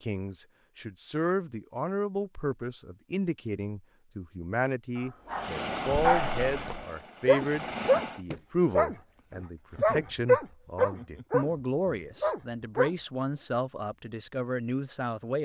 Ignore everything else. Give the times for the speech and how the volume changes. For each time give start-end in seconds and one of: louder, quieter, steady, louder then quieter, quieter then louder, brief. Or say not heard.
0.0-15.4 steady.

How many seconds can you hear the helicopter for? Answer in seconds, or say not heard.
3 s.